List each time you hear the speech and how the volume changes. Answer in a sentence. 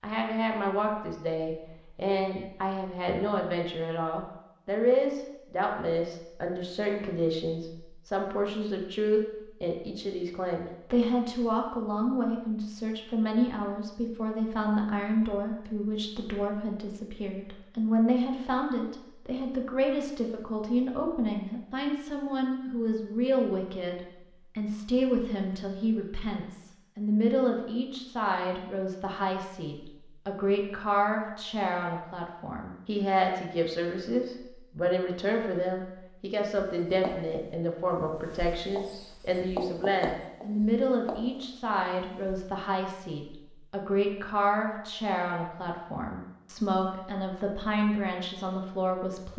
The speech can be heard from 0.0 to 49.3 s, at a steady volume.